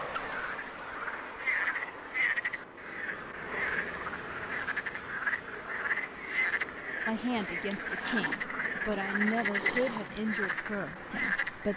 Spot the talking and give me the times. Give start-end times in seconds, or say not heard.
7.0-11.7.